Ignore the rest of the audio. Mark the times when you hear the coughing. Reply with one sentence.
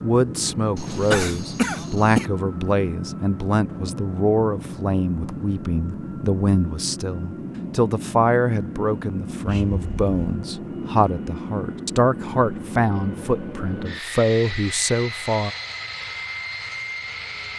You can hear the coughing from 0.8 to 2.2 s and from 9.4 to 10.3 s.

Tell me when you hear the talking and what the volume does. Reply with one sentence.
You can hear the talking from 0.0 to 15.5 s, at a steady volume.